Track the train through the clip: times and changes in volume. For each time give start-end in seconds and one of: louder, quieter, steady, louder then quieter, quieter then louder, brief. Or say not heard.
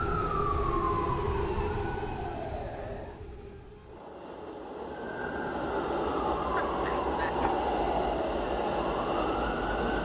0.0-9.9 quieter then louder.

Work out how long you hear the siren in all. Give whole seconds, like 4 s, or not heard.
8 s.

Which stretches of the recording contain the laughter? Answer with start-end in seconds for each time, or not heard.
6.5-7.3.